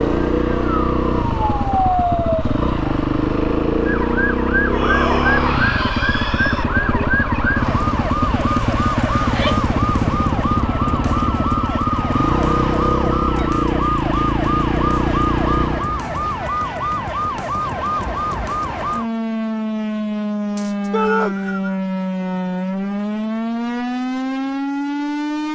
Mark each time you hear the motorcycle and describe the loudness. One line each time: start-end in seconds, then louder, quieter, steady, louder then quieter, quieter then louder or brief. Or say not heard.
0.0-15.9 steady.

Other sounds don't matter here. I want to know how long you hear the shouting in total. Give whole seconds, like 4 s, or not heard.
3 s.